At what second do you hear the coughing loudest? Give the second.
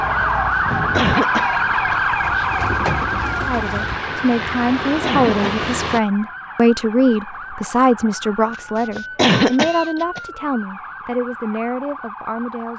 9 s.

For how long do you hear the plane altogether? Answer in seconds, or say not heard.
6 s.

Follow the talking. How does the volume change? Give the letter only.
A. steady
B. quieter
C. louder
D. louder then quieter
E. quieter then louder
B.